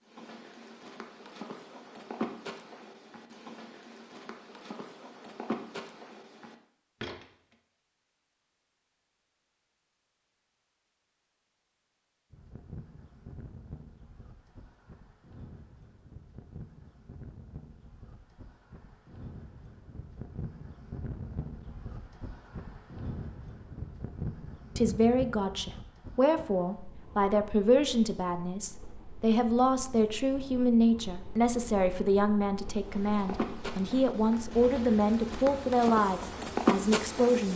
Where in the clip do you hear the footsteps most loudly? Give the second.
37 s.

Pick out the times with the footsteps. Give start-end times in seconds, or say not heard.
0.0-7.2, 32.8-37.5.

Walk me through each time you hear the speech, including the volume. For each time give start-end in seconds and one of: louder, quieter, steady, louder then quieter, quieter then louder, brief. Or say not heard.
24.8-37.5 steady.